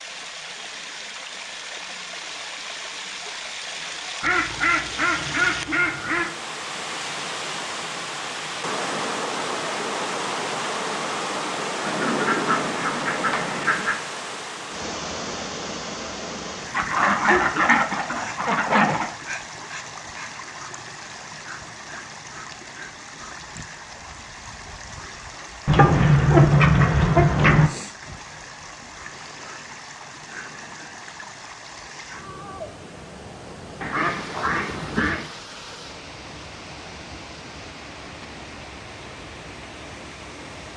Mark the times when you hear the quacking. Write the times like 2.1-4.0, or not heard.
4.2-6.3, 11.8-13.9, 16.7-19.1, 25.6-27.7, 33.8-35.3.